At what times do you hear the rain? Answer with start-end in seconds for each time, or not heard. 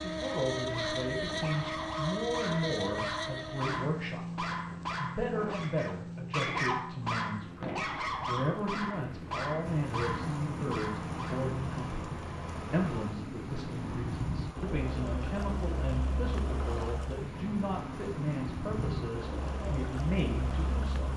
9.6-21.1.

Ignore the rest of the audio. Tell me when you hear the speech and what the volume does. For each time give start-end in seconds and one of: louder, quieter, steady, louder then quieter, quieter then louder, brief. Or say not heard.
0.0-21.1 steady.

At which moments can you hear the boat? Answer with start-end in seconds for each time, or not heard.
0.0-21.1.